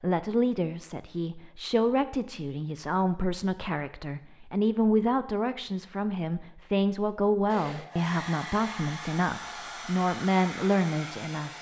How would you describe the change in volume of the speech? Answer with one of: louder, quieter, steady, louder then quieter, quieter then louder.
steady.